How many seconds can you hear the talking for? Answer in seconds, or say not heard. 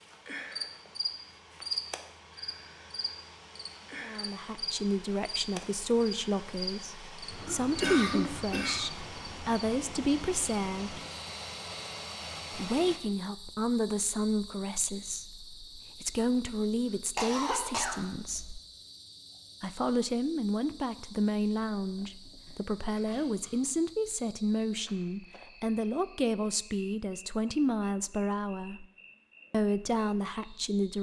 24 s.